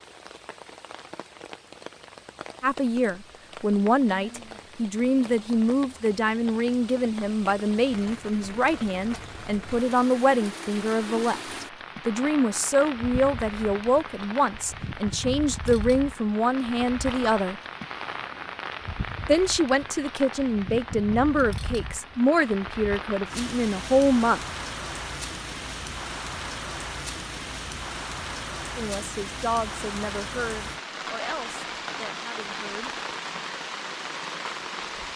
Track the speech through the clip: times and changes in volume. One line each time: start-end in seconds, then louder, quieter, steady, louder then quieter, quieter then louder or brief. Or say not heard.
2.6-17.6 steady
19.2-24.4 steady
28.8-32.9 quieter.